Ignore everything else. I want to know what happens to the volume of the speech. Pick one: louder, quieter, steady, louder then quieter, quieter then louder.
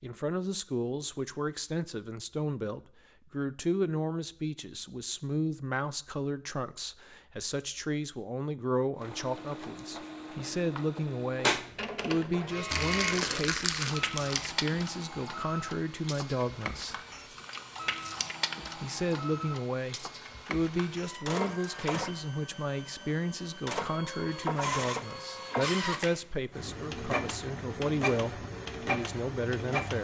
steady.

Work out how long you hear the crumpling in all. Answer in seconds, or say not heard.
2 s.